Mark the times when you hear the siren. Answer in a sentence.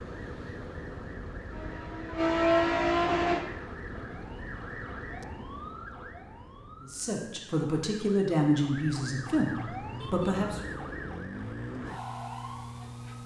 The siren can be heard from 0.0 to 13.2 s.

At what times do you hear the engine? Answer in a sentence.
You can hear the engine from 1.4 to 3.5 s.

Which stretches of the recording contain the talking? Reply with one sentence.
The talking can be heard from 6.8 to 10.7 s.